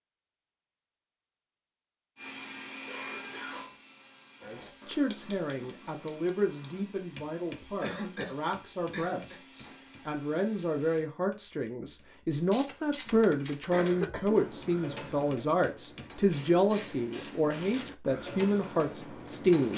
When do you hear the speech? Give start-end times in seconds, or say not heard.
4.5-19.7.